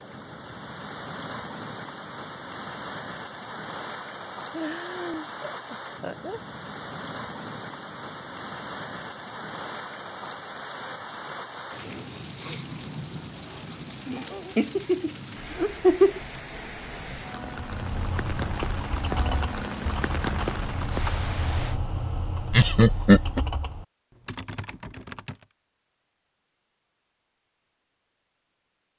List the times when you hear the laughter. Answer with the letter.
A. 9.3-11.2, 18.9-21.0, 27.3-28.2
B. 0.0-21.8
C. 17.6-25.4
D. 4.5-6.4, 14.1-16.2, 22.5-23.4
D.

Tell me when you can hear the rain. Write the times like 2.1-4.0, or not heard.
0.0-21.8.